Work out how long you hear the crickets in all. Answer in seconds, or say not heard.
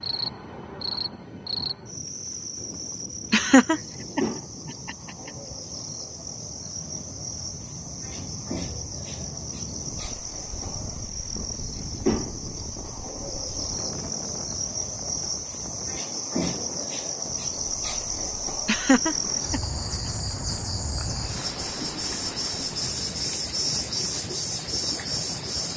26 s.